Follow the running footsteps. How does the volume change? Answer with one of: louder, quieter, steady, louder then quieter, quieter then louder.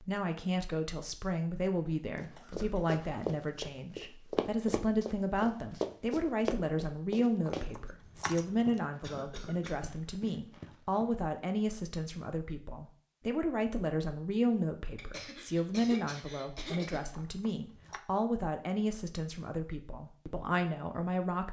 quieter.